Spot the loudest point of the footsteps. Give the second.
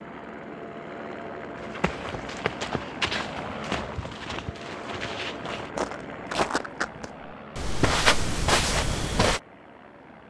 8 s.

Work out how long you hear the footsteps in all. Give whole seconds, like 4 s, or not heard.
8 s.